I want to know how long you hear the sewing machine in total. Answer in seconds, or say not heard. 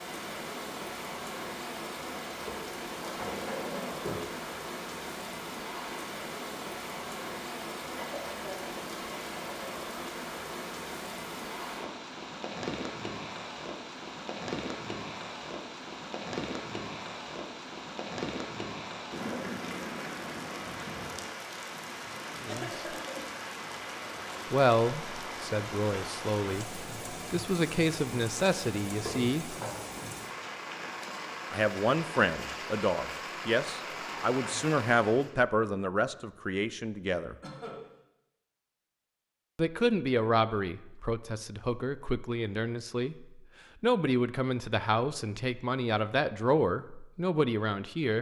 not heard.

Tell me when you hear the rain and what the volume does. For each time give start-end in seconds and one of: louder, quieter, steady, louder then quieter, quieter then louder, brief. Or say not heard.
0.0-35.4 steady.